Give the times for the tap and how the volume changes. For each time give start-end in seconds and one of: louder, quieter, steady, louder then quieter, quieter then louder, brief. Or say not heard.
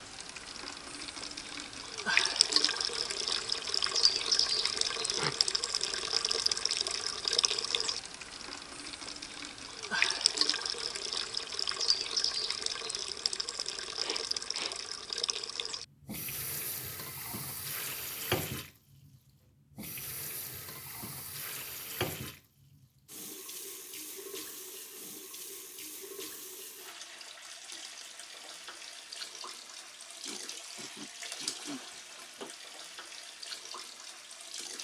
0.0-34.7 quieter.